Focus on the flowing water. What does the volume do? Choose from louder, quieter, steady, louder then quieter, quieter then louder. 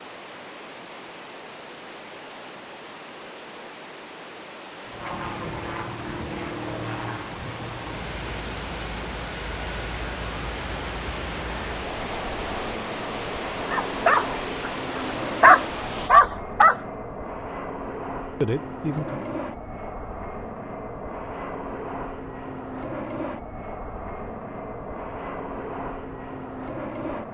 louder.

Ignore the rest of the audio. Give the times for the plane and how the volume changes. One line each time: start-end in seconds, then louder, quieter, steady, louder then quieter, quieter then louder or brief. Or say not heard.
4.8-27.3 steady.